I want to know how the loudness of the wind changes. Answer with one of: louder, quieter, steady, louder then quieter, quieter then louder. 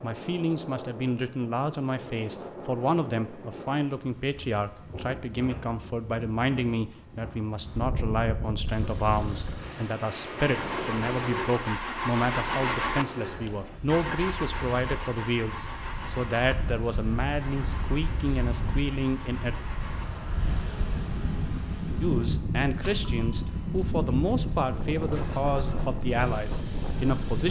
louder.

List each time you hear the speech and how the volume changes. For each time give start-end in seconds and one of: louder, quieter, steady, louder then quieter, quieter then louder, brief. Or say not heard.
0.0-19.6 steady
22.0-27.4 steady.